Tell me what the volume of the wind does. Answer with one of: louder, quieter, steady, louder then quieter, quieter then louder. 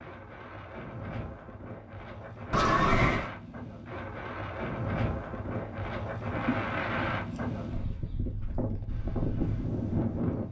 louder.